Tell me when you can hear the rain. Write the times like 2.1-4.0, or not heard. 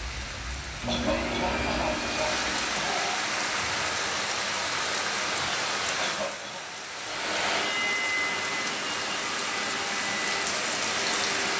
0.0-11.5.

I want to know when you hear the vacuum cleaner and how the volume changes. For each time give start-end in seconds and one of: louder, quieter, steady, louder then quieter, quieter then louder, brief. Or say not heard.
0.0-2.9 brief
6.9-11.5 quieter.